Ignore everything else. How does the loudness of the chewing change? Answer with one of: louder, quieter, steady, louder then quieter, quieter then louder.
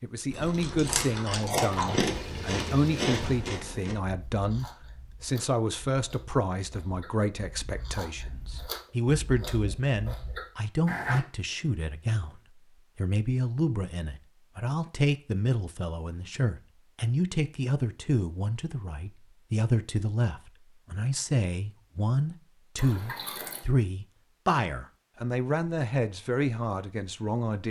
quieter then louder.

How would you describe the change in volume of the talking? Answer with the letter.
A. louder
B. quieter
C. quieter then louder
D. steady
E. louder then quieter
D.